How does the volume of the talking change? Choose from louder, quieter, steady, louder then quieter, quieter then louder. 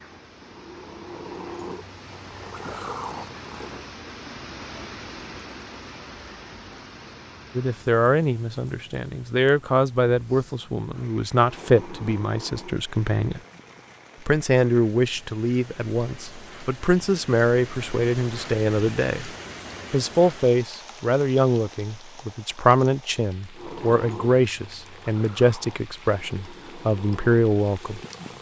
steady.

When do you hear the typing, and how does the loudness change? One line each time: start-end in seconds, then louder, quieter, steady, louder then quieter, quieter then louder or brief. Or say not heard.
not heard.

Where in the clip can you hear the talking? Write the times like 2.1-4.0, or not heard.
7.5-13.4, 14.2-19.3, 19.9-28.0.